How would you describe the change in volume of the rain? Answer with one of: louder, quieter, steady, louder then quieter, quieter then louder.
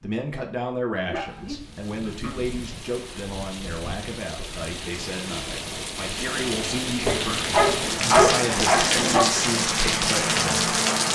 louder.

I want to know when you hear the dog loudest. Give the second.
8 s.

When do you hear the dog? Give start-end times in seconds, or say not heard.
1.1-2.5, 7.0-9.2.